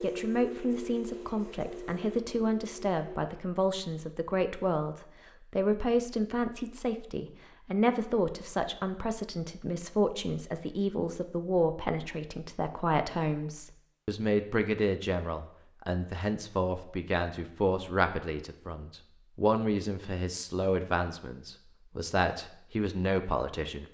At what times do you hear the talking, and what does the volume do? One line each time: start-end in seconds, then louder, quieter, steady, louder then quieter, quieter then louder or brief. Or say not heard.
0.0-23.9 steady.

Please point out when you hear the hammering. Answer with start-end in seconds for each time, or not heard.
not heard.